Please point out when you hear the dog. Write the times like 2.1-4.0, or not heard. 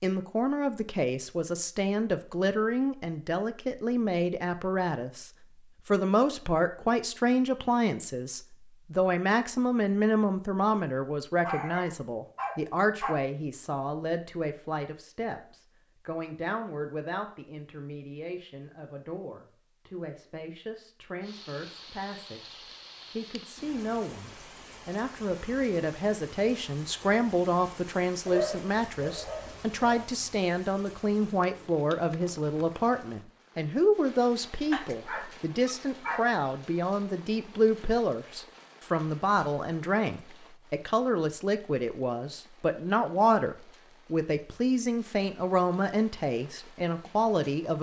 11.4-13.2, 28.2-30.1, 34.7-36.2.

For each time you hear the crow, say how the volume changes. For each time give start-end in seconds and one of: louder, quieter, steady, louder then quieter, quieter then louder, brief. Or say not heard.
not heard.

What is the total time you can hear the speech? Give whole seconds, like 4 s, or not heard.
48 s.